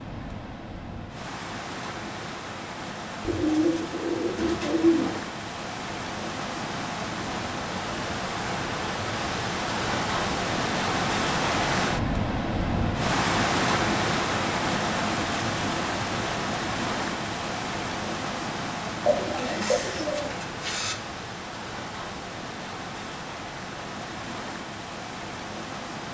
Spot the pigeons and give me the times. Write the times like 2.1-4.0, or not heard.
3.2-5.2, 19.0-20.9.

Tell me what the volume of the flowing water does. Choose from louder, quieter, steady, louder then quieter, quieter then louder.
louder then quieter.